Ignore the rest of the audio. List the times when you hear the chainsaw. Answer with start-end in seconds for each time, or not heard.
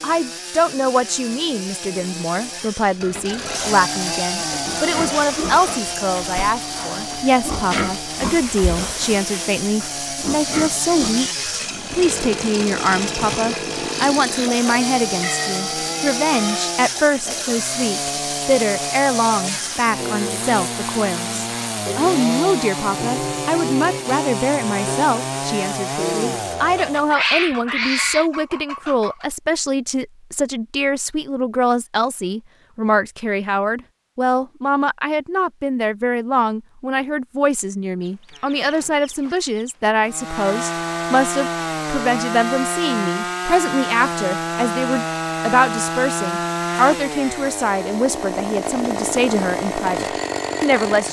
0.0-27.1, 40.0-51.0.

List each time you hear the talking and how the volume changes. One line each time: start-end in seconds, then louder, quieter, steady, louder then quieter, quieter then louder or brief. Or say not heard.
0.0-51.0 steady.